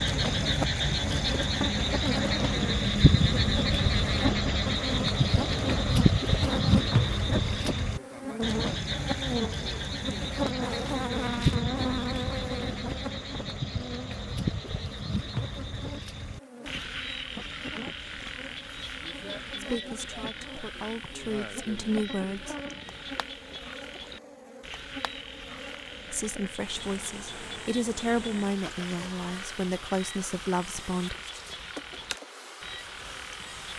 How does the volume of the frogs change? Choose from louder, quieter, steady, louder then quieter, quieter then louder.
quieter.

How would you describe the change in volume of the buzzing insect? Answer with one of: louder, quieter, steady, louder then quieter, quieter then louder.
quieter.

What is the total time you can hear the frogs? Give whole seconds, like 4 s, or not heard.
34 s.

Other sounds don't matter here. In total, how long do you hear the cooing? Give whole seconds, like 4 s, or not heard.
not heard.